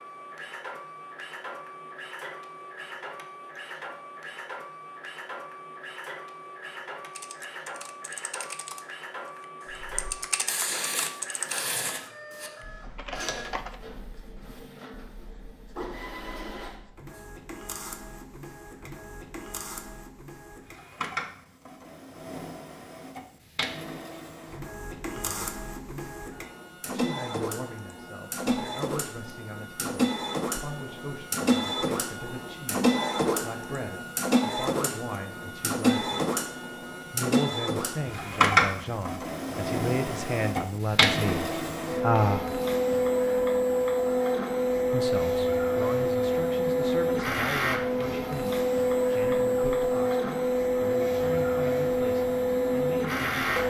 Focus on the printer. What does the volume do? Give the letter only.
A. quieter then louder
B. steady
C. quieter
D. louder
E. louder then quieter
D.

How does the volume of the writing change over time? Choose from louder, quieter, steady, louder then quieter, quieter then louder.
quieter.